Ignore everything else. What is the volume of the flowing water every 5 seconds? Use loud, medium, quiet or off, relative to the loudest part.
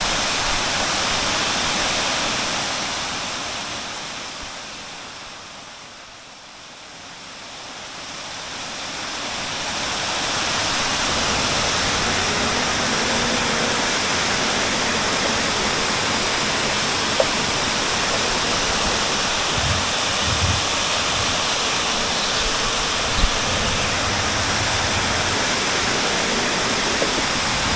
loud, medium, loud, loud, loud, loud.